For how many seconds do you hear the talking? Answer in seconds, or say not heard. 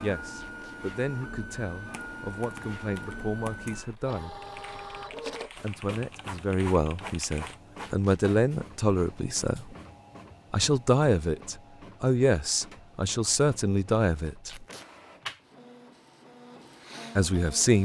13 s.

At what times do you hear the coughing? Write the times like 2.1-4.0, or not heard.
not heard.